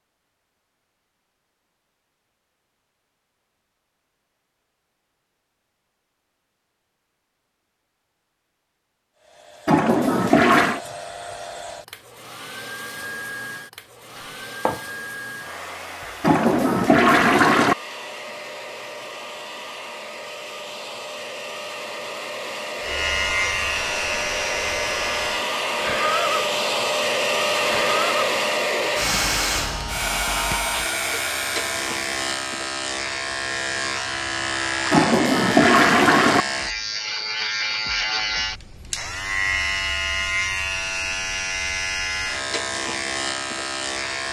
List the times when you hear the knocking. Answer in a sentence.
The knocking can be heard from 14.2 to 14.8 s.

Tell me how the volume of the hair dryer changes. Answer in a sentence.
The loudness of the hair dryer goes up.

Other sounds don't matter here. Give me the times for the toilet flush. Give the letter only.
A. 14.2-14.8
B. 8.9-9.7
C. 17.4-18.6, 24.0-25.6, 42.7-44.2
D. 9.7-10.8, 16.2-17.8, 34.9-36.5
D.